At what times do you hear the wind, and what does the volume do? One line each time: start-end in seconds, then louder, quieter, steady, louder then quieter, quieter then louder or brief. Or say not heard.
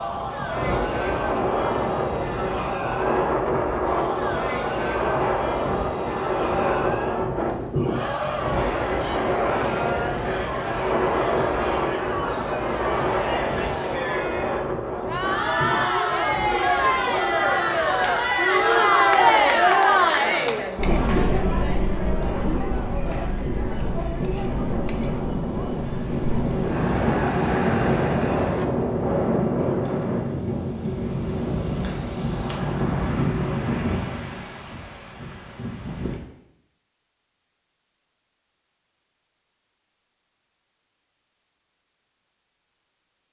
0.0-36.2 quieter then louder.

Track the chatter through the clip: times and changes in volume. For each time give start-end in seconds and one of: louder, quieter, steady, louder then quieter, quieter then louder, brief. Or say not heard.
0.0-28.7 louder then quieter.